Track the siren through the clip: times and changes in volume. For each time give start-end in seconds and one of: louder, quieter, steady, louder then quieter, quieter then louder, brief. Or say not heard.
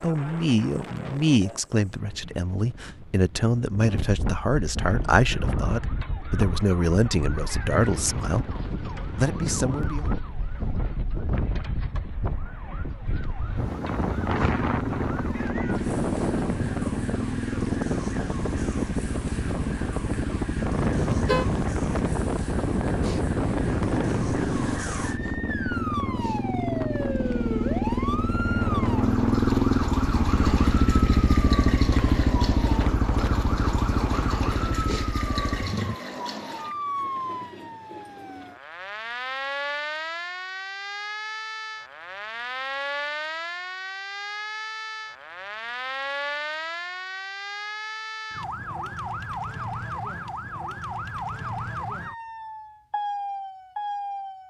4.8-54.4 louder.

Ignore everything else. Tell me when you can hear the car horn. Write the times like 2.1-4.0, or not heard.
20.9-21.4.